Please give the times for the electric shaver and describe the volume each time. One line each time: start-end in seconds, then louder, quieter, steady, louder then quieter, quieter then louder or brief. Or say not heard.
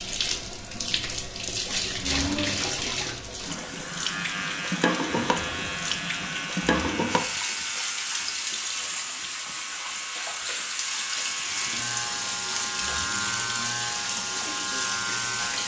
3.7-15.6 quieter then louder.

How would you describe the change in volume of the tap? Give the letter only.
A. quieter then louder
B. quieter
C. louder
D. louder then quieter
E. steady
E.